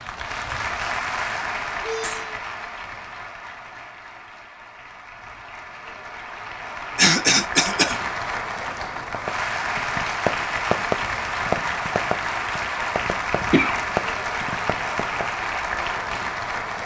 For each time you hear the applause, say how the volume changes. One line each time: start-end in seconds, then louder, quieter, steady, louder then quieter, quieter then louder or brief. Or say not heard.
0.0-16.8 quieter then louder.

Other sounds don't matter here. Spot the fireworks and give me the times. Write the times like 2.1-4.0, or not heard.
8.9-15.3.